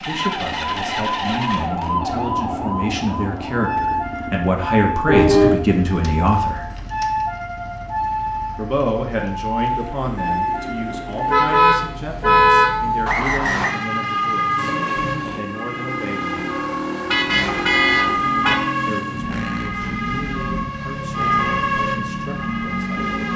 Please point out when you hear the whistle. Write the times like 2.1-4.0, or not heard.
13.1-13.8.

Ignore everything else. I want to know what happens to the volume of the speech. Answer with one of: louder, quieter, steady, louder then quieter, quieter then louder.
louder then quieter.